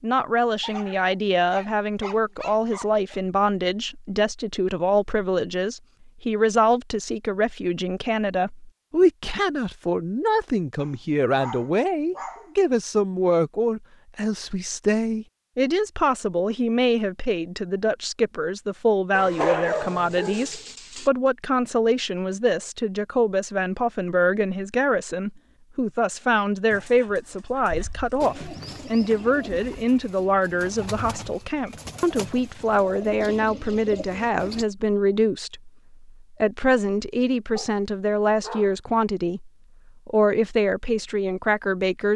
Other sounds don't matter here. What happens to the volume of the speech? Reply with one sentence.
The volume of the speech stays about the same.